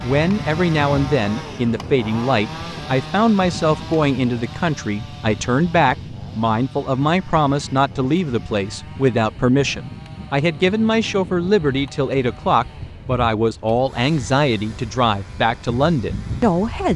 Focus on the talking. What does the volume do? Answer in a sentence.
The volume of the talking stays about the same.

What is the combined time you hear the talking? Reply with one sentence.
The talking can be heard for 17 seconds in total.